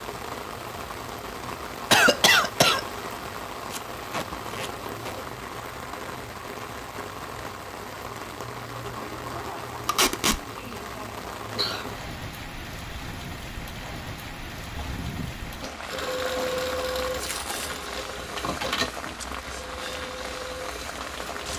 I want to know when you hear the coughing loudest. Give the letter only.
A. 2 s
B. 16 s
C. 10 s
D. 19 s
A.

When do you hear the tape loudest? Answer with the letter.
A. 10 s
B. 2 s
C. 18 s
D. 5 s
A.